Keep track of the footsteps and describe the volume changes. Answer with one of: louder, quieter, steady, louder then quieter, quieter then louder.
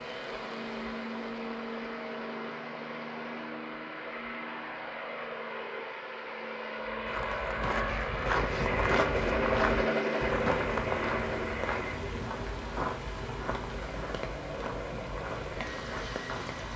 quieter.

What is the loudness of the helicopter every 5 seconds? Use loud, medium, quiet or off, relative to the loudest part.
medium, loud, loud, medium.